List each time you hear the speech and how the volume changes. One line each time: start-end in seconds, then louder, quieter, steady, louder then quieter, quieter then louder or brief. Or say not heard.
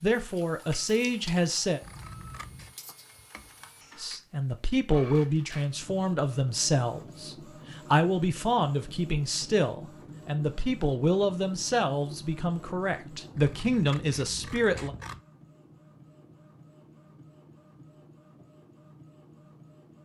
0.0-1.8 brief
4.0-14.9 steady.